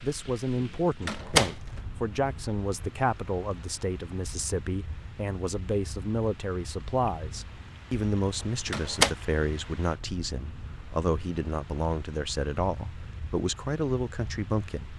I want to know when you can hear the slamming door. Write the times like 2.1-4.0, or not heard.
1.0-1.6, 8.7-9.1.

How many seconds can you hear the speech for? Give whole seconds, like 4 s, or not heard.
15 s.